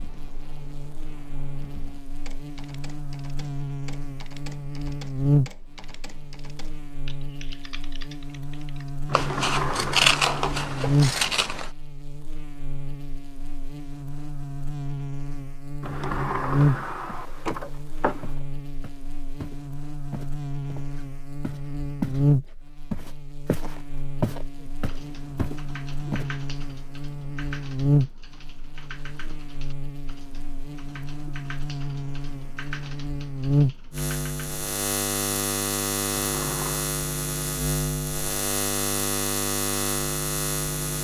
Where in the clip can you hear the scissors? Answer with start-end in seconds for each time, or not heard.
9.1-11.7.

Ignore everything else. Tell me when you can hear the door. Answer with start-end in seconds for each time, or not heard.
9.1-10.3, 15.8-18.3, 36.2-36.9.